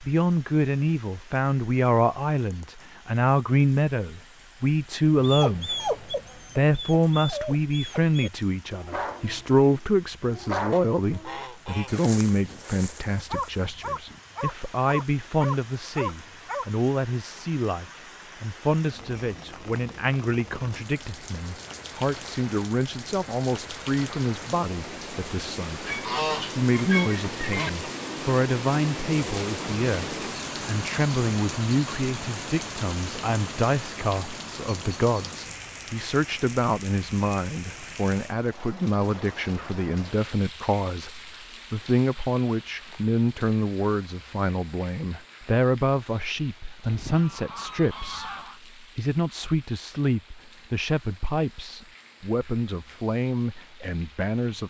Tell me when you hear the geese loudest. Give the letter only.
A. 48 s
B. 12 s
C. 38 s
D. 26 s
D.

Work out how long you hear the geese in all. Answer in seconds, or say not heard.
5 s.